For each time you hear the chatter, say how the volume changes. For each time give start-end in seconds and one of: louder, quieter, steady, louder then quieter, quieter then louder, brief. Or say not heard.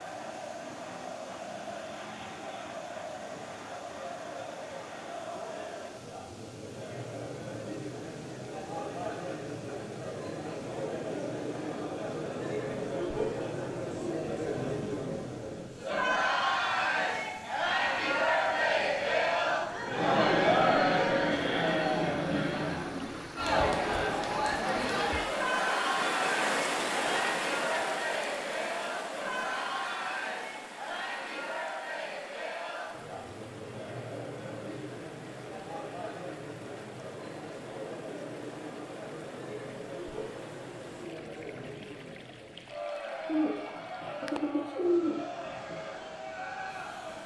0.0-47.2 louder then quieter.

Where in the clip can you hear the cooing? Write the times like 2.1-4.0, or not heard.
43.2-45.8.